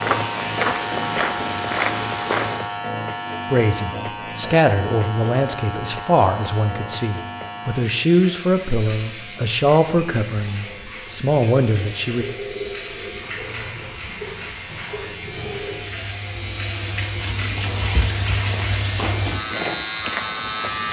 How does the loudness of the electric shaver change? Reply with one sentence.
The loudness of the electric shaver goes down, then up.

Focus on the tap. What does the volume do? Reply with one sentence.
The loudness of the tap goes up.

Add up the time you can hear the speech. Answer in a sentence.
You can hear the speech for 9 seconds altogether.